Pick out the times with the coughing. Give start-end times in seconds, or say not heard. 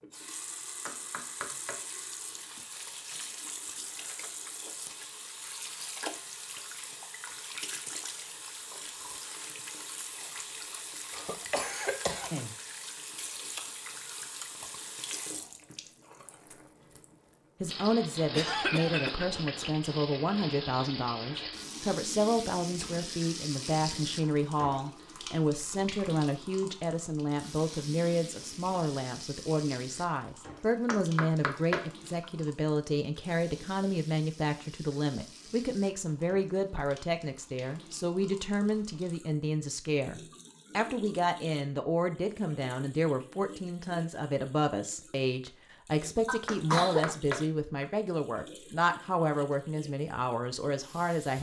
11.1-12.6, 18.3-19.3, 46.2-47.1.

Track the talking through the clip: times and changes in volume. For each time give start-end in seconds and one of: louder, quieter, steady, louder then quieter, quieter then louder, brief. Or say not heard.
17.6-51.3 steady.